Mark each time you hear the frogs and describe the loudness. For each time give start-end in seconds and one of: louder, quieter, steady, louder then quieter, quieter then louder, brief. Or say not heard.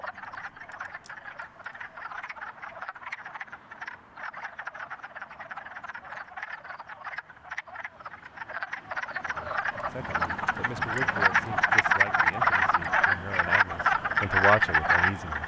0.0-15.4 louder.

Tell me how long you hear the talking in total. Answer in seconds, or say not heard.
6 s.